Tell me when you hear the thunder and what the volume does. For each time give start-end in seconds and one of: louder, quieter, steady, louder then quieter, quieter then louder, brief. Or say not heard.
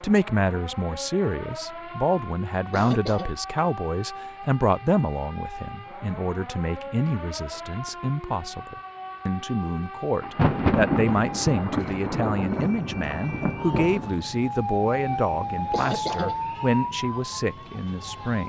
10.2-14.2 quieter.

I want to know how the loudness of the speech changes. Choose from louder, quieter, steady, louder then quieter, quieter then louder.
steady.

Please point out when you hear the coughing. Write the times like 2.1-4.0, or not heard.
2.5-3.3, 15.6-16.4.